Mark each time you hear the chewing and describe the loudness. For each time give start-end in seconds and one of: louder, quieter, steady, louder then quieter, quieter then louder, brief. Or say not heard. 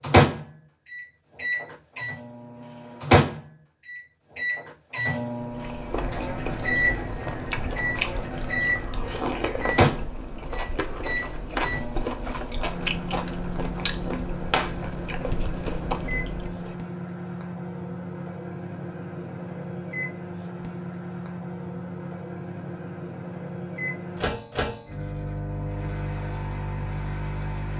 5.5-16.8 steady.